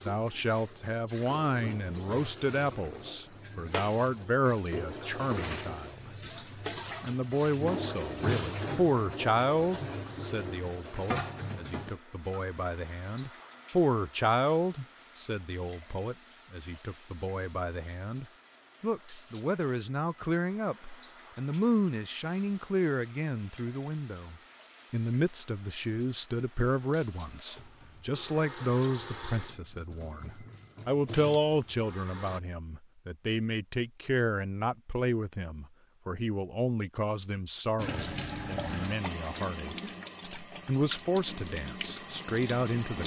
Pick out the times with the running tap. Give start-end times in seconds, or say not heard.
0.0-32.4, 37.8-43.0.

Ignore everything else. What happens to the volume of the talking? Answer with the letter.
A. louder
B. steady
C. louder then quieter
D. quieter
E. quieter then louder
B.